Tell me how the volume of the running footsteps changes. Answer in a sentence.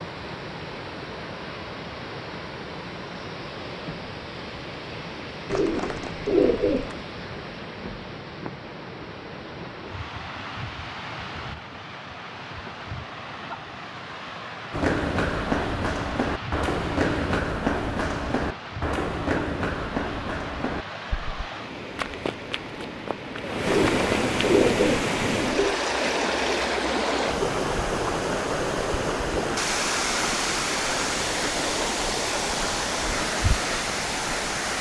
The loudness of the running footsteps goes down.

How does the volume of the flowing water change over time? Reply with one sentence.
The volume of the flowing water goes up.